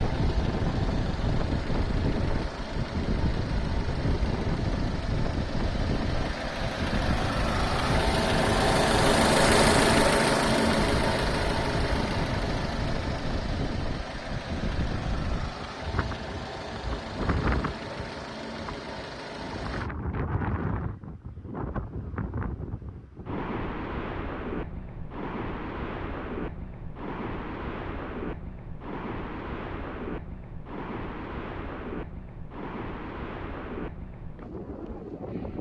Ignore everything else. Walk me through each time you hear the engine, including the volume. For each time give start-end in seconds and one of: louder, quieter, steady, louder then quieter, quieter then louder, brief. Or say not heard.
0.0-19.9 louder then quieter.